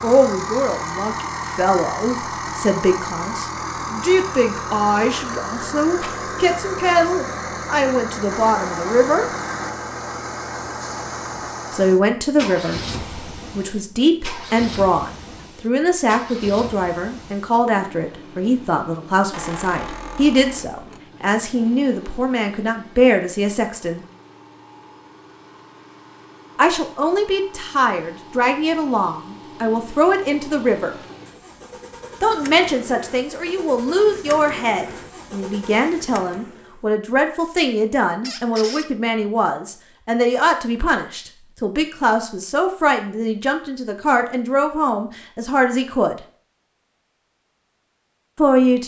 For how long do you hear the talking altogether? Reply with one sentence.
The talking can be heard for 40 seconds in total.